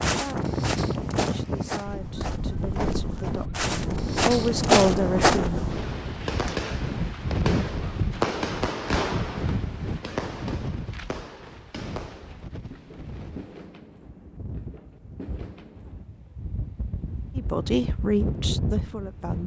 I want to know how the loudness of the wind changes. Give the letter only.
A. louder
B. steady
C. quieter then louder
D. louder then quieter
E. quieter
C.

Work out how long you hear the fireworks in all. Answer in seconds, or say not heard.
10 s.